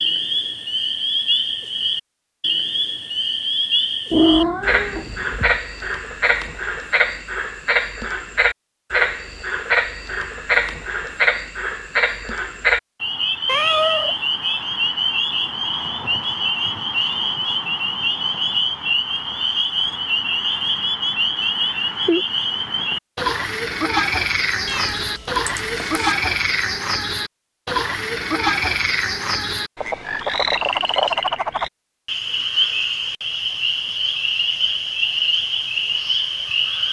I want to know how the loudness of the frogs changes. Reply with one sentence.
The loudness of the frogs stays about the same.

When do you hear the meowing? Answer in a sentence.
The meowing can be heard from 4.1 to 5.6 s, from 13.4 to 14.2 s and from 24.6 to 26.1 s.